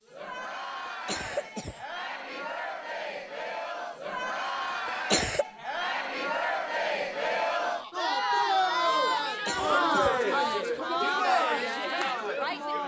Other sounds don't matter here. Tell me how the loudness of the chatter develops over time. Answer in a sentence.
The loudness of the chatter goes up.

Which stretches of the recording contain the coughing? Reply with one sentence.
The coughing can be heard from 0.8 to 1.9 s, from 4.8 to 5.5 s and from 9.4 to 10.2 s.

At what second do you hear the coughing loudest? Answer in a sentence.
The loudest moment of the coughing is at 5 seconds.